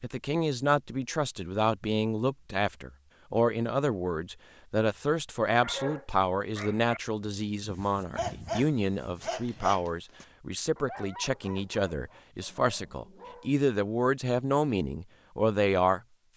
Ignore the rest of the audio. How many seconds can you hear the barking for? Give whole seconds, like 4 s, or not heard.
8 s.